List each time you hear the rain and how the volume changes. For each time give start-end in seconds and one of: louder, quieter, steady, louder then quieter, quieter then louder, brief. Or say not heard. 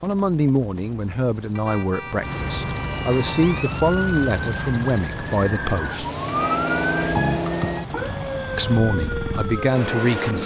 not heard.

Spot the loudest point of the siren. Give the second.
7 s.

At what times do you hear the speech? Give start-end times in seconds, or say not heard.
0.0-6.0, 8.6-10.4.